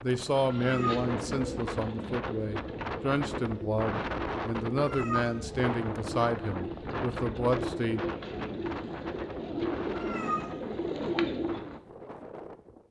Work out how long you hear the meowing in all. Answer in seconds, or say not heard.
2 s.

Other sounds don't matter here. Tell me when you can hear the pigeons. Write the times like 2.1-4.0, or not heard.
0.3-11.8.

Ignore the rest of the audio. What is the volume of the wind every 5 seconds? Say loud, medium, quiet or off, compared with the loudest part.
loud, loud, medium.